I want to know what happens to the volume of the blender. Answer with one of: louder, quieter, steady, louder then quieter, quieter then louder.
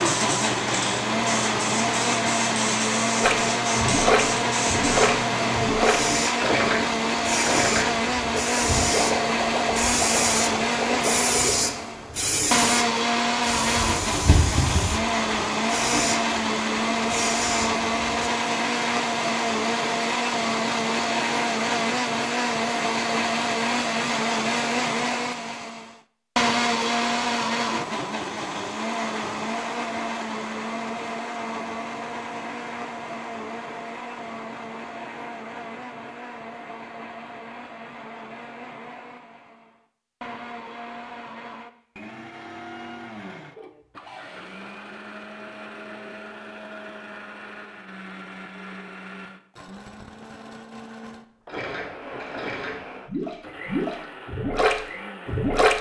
quieter.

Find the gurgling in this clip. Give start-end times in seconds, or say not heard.
3.2-11.6, 51.5-55.7.